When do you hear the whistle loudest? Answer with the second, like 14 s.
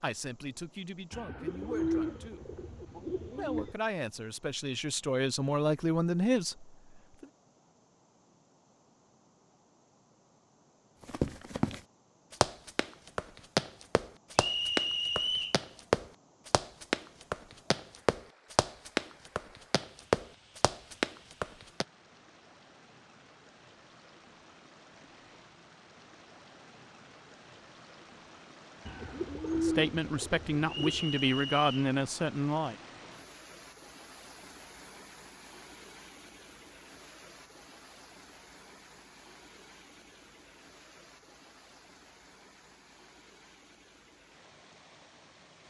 15 s.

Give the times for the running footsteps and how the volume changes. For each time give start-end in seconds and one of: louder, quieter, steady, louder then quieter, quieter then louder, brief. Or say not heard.
11.1-21.9 steady.